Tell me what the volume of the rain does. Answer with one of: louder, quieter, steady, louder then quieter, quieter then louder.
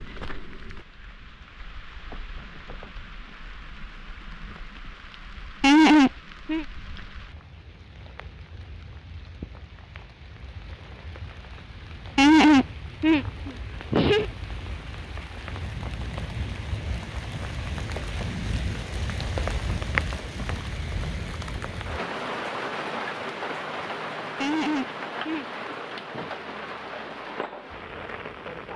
louder.